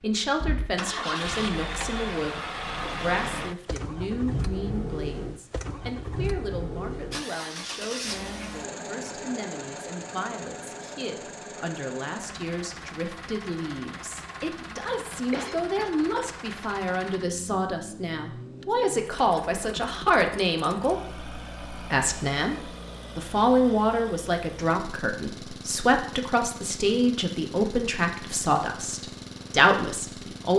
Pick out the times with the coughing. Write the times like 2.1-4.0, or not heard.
15.3-15.9.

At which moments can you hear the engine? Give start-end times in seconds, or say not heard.
0.0-30.5.